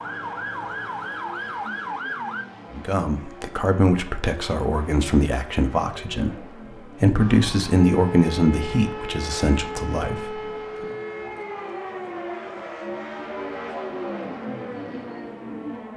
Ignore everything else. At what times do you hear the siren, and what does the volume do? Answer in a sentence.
You can hear the siren briefly from 0.0 to 2.5 s; and from 7.2 to 15.9 s, getting quieter.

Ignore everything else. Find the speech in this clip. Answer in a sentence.
You can hear the speech from 2.7 to 10.8 s.